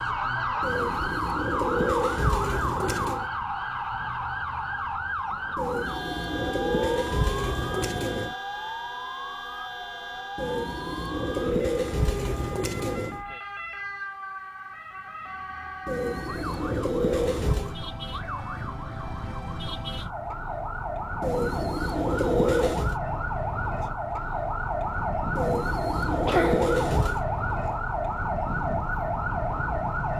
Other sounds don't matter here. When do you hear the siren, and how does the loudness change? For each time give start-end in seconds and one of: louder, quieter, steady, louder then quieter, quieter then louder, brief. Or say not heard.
0.0-30.1 quieter then louder.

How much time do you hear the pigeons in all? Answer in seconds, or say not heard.
14 s.